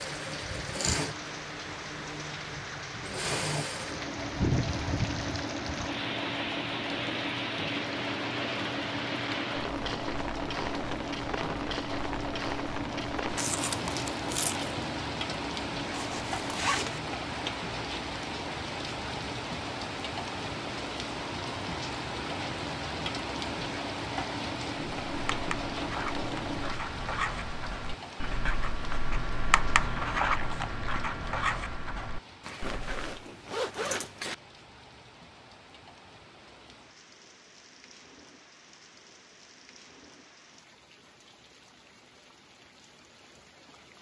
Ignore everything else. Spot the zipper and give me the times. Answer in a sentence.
You can hear the zipper from 15.9 to 17.0 s and from 32.4 to 34.4 s.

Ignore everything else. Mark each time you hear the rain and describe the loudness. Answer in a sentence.
The rain can be heard from 0.0 to 43.9 s, getting quieter.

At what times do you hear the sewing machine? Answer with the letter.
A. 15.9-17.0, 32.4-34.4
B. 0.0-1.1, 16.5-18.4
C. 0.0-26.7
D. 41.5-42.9
C.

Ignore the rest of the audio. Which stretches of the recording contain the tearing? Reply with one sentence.
The tearing can be heard from 13.3 to 14.8 s.